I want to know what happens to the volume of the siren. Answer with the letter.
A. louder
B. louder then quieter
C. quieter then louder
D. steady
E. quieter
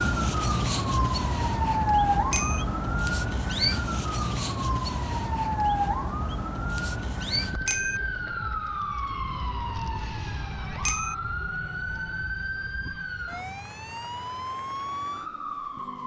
E.